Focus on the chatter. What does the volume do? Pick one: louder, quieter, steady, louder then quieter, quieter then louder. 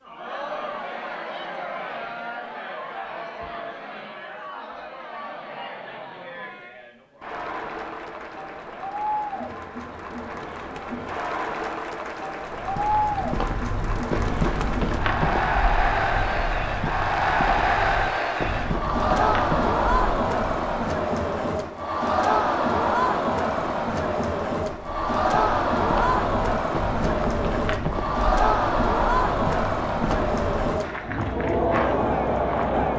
louder.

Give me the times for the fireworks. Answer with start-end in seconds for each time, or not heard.
not heard.